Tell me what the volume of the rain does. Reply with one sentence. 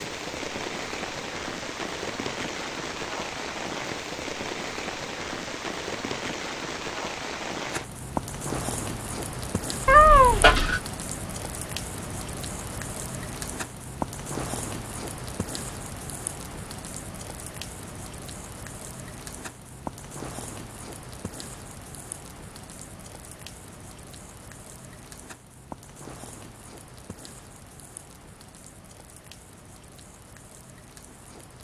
The loudness of the rain goes down.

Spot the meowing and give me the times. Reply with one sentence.
The meowing can be heard from 9.8 to 10.8 s.